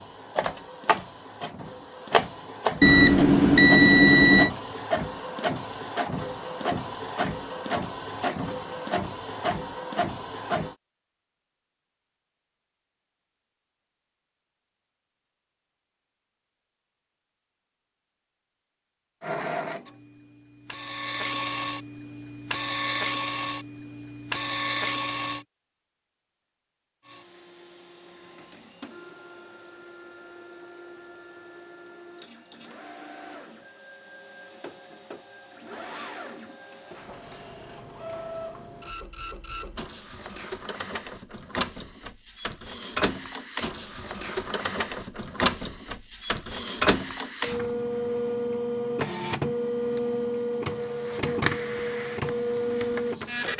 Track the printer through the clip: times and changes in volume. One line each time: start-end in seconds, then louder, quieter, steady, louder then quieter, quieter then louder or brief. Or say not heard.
0.0-10.8 steady
19.2-25.4 louder
27.0-53.5 louder.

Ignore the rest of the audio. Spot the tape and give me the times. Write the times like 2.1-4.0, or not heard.
not heard.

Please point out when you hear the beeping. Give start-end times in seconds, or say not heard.
2.8-4.5.